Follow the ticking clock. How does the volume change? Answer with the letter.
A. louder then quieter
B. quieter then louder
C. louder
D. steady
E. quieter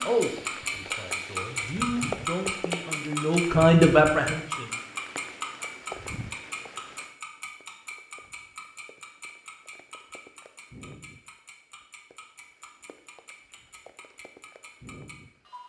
E.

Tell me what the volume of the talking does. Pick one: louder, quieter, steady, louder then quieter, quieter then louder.
louder.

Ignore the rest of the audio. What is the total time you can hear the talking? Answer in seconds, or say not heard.
5 s.